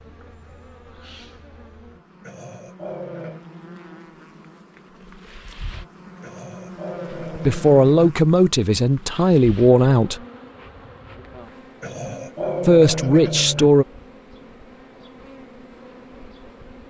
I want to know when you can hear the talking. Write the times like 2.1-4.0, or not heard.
7.3-10.2, 12.7-13.8.